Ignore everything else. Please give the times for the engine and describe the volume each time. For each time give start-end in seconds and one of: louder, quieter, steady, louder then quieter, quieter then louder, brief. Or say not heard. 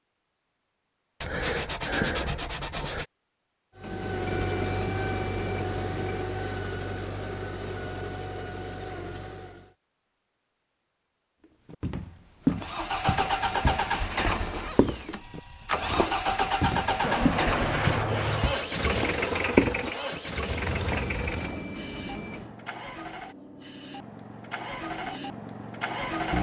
3.8-9.8 quieter
12.5-26.3 quieter.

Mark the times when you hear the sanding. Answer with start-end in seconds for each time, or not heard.
1.2-3.0, 17.0-18.6.